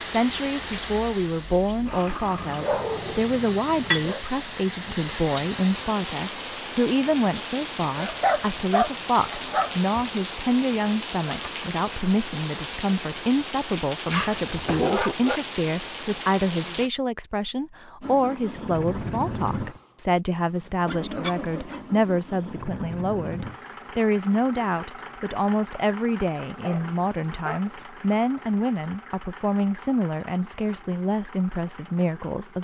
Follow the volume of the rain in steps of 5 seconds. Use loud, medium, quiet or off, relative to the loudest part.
loud, loud, loud, loud, off, off, off.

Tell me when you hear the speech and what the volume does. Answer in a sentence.
You can hear the speech from 0.0 to 32.6 s, at a steady volume.